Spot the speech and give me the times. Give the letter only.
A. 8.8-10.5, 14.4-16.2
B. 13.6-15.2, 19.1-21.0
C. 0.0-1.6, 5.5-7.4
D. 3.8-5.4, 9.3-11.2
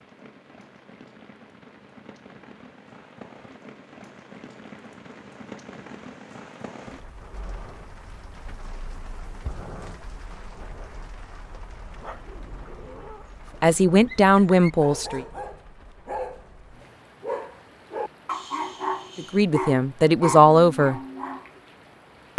B.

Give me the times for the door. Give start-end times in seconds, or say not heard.
not heard.